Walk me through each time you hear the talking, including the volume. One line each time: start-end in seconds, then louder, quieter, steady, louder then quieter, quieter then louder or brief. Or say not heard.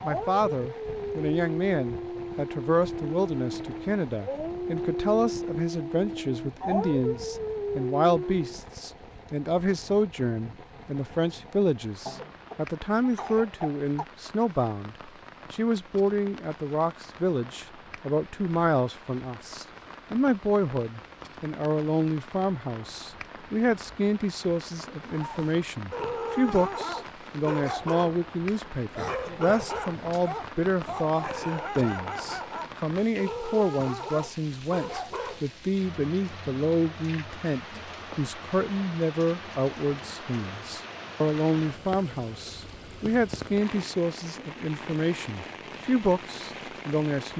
0.0-47.3 steady.